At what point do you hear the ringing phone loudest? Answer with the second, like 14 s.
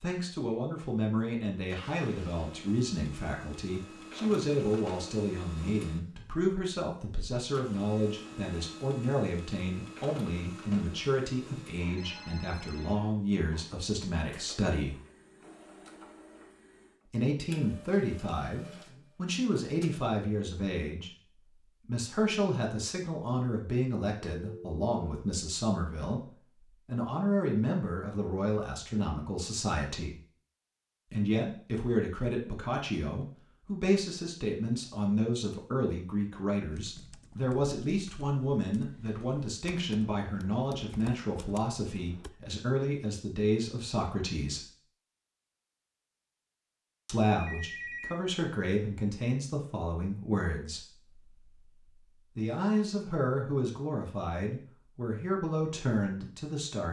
48 s.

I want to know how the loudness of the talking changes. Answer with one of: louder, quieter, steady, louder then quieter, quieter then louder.
steady.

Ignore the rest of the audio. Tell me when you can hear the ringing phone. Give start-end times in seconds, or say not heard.
11.9-12.9, 24.2-25.2, 47.4-48.2.